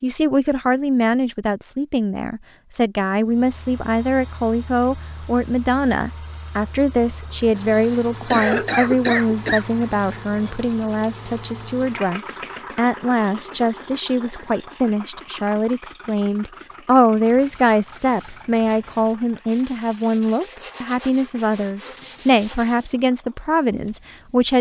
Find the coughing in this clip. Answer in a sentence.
The coughing can be heard from 7.8 to 9.7 s.